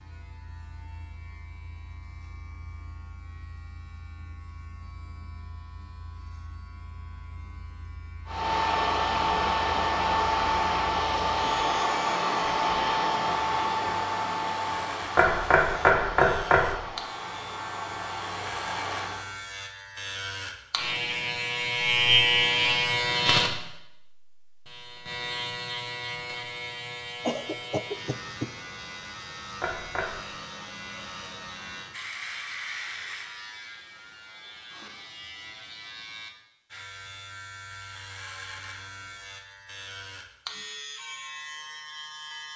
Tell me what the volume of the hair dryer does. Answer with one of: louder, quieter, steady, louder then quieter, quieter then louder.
quieter.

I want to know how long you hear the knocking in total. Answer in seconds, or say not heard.
2 s.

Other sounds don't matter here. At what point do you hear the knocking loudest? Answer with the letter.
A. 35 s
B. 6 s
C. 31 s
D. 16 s
D.